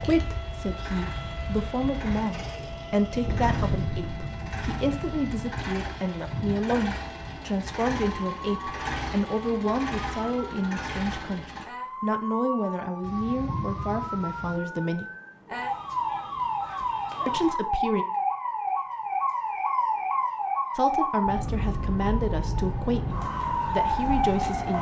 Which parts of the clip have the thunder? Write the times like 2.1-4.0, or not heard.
2.5-5.7, 13.0-14.6.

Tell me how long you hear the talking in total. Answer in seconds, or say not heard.
20 s.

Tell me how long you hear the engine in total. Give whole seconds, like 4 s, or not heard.
12 s.